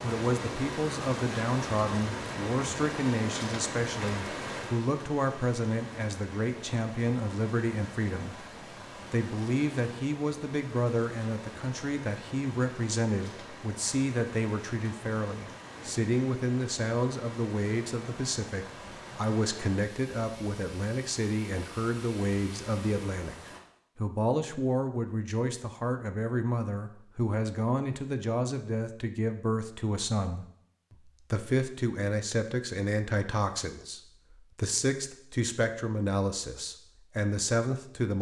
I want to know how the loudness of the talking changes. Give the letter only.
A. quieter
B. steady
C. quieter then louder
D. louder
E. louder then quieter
B.